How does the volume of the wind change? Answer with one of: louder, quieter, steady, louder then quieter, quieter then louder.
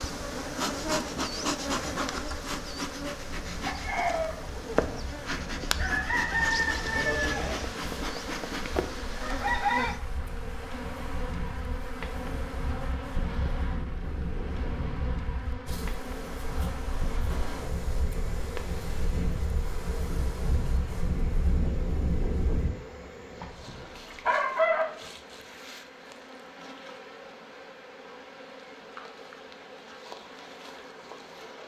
louder.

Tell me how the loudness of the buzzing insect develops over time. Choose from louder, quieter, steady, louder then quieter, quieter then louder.
quieter.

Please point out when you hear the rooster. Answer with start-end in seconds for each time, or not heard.
3.6-7.6, 23.4-24.9.